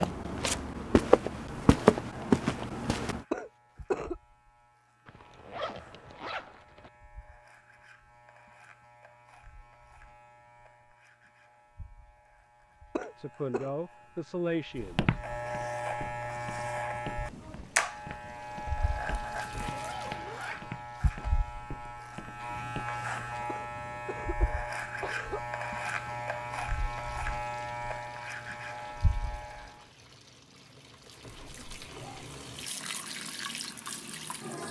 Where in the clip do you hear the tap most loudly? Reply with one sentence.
The loudest moment of the tap is at 33 seconds.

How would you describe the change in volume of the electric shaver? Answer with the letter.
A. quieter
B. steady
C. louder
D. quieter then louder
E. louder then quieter
C.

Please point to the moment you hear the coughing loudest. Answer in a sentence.
The volume of the coughing peaks at 4 seconds.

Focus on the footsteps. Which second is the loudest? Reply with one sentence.
The volume of the footsteps peaks at 2 seconds.